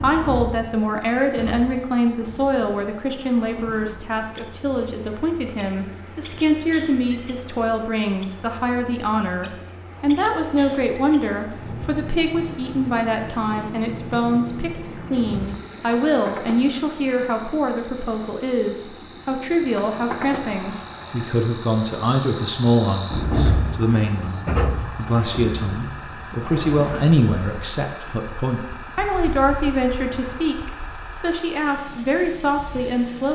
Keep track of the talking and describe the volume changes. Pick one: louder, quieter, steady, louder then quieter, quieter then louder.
steady.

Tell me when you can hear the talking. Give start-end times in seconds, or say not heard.
0.0-33.3.